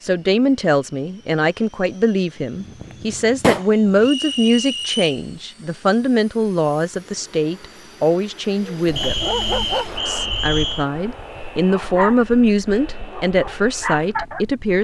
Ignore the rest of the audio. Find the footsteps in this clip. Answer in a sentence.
The footsteps can't be heard in this clip.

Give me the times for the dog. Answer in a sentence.
You can hear the dog from 8.7 to 14.6 s.